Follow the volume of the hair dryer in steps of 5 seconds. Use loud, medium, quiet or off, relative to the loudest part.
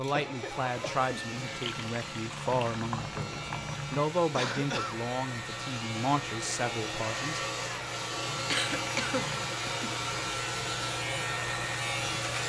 medium, loud, loud.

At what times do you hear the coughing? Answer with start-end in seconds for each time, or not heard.
0.1-1.4, 4.3-5.0, 8.5-9.9.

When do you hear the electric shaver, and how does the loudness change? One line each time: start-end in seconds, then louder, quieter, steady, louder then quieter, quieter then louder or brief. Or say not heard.
0.0-12.4 louder.